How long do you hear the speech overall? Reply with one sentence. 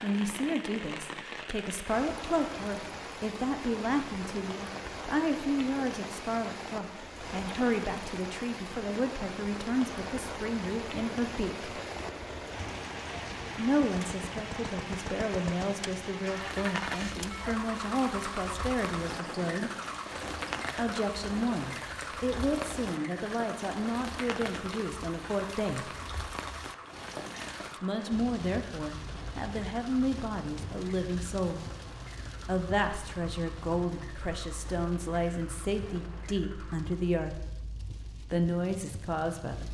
The speech can be heard for 33 seconds in total.